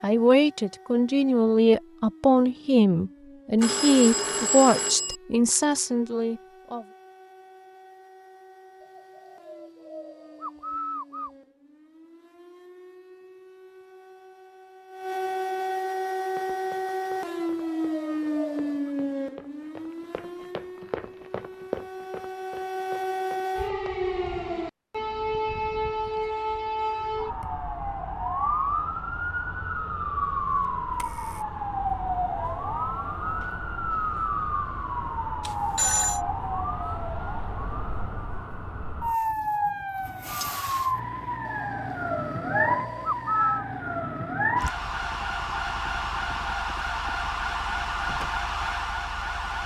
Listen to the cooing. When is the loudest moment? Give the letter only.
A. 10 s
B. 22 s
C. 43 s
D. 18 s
C.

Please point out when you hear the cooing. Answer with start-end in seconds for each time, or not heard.
8.8-11.3, 17.4-18.9, 41.5-43.6.